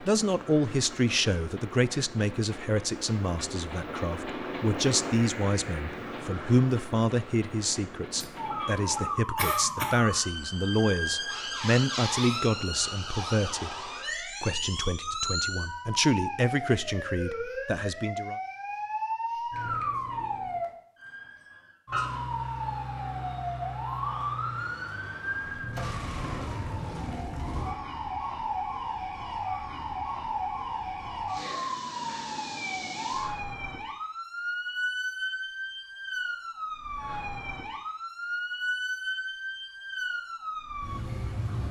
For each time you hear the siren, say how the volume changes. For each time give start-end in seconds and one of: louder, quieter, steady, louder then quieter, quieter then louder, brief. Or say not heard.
8.3-41.6 steady.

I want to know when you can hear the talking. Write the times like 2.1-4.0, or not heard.
0.0-13.8, 14.4-18.4.